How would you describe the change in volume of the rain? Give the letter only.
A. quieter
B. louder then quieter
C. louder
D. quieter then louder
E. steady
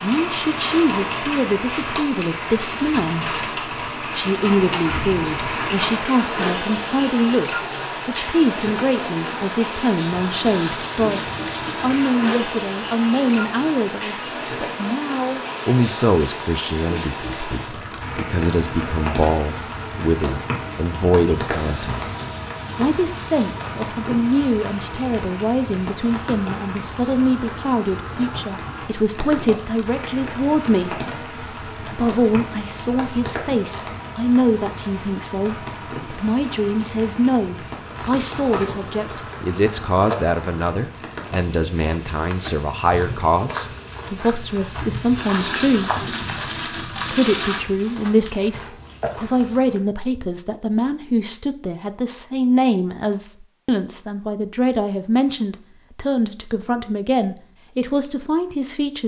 A.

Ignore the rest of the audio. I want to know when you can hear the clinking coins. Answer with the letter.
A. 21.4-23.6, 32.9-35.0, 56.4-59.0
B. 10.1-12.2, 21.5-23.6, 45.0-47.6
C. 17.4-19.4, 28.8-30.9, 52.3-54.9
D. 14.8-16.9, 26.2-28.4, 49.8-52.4
B.